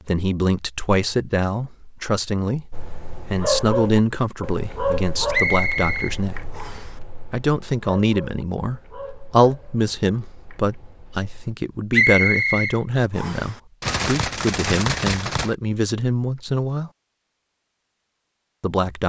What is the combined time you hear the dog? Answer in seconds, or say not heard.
9 s.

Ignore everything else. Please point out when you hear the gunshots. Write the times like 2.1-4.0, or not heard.
13.8-15.6.